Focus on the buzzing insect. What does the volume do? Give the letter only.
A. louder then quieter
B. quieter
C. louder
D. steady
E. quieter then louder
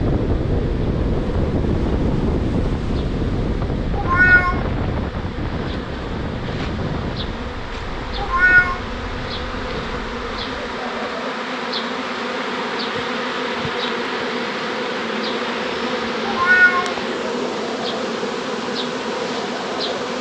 C.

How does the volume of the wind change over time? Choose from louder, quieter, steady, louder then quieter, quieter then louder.
quieter.